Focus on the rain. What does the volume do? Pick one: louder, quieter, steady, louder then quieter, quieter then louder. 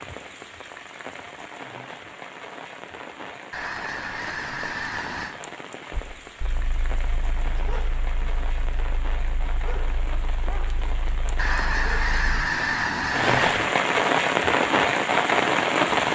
louder.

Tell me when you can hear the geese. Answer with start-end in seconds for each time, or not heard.
3.5-5.3, 11.3-13.7.